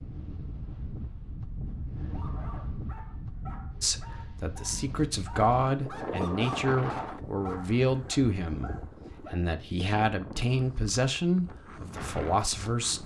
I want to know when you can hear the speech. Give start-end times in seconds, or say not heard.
3.8-13.0.